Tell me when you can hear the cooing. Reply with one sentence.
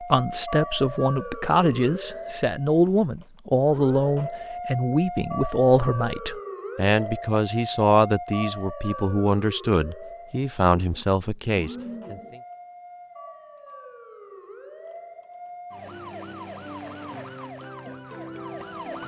You can hear the cooing from 10.8 to 12.3 s.